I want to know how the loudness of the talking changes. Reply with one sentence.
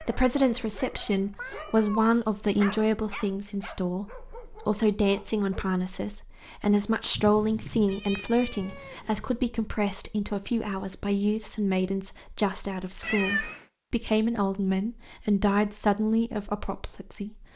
The volume of the talking stays about the same.